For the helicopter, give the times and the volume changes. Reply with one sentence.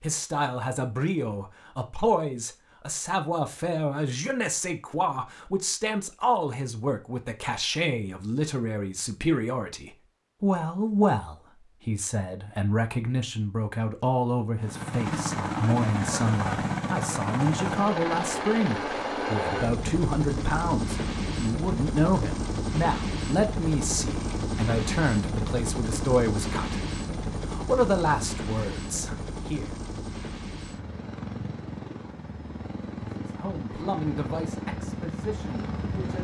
You can hear the helicopter from 14.6 to 36.1 s, getting quieter.